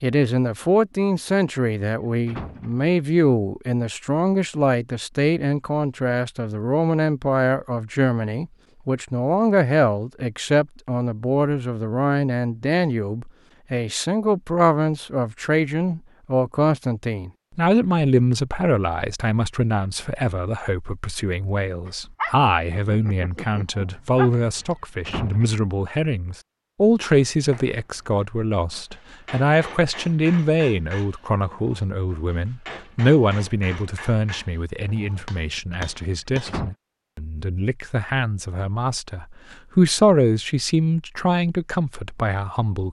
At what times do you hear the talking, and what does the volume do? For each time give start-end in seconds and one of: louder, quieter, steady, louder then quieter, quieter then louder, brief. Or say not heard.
0.0-42.8 steady.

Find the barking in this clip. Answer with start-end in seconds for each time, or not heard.
21.9-24.8.